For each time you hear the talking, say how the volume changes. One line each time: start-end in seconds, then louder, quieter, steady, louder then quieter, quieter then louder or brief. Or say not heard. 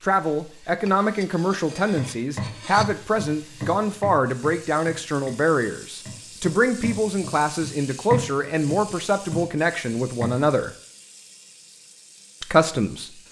0.0-10.7 steady
12.4-13.2 brief.